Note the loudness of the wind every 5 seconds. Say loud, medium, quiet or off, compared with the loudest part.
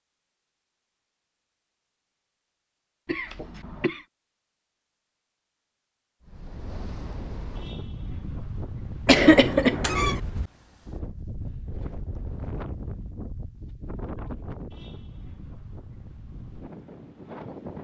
off, loud, loud, loud.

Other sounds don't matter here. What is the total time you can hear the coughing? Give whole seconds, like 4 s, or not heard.
2 s.